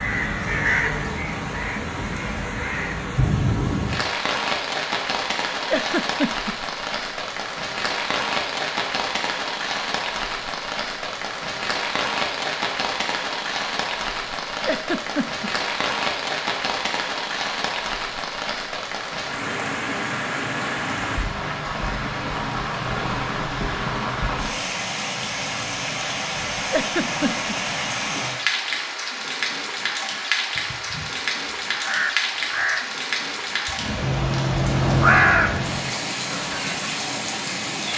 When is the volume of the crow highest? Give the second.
35 s.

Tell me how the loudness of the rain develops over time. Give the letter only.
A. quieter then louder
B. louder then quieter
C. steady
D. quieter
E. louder
C.